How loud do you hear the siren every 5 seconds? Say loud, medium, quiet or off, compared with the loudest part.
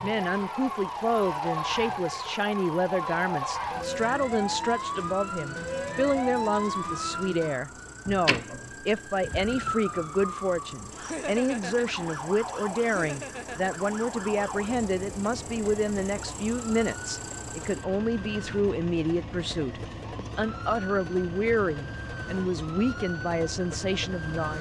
loud, loud, medium, medium, medium.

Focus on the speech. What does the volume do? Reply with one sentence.
The loudness of the speech stays about the same.